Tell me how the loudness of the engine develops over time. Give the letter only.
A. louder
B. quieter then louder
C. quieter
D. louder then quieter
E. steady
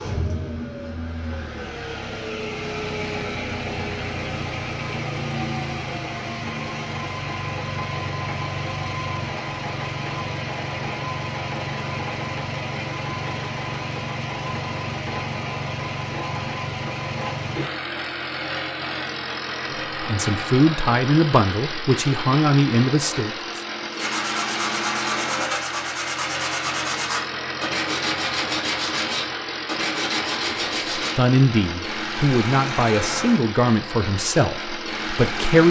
E.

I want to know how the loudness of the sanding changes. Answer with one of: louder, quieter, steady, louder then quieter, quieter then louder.
steady.